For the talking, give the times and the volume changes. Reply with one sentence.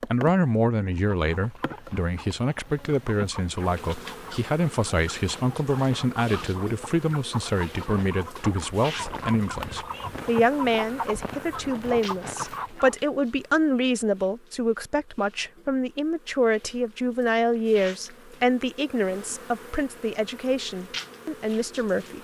You can hear the talking from 0.0 to 22.1 s, at a steady volume.